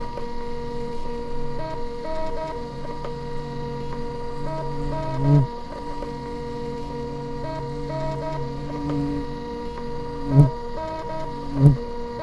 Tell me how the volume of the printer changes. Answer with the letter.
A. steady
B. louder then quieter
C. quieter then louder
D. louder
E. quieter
A.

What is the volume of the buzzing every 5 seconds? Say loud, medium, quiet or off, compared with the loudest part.
quiet, medium, loud.